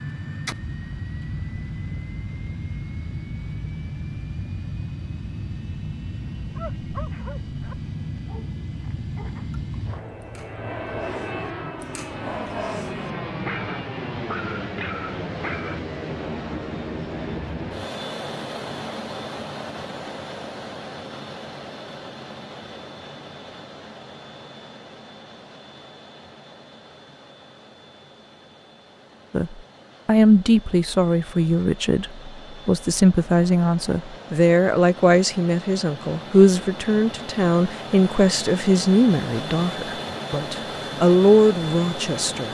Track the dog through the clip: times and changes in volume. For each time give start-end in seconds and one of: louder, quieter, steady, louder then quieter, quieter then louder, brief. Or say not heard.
6.4-15.8 quieter then louder.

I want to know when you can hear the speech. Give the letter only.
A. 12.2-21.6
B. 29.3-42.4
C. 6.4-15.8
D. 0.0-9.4
B.